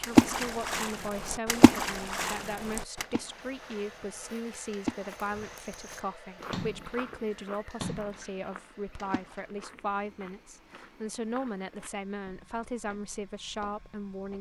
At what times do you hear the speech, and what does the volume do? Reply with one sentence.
The speech can be heard from 0.0 to 14.3 s, at a steady volume.